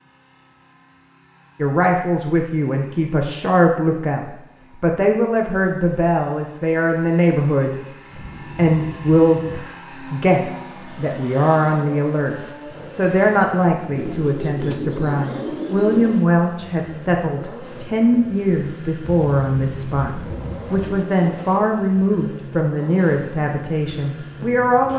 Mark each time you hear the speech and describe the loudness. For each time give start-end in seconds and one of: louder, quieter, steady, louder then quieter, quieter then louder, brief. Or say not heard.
1.6-24.9 steady.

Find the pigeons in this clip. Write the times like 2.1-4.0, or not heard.
13.9-16.2.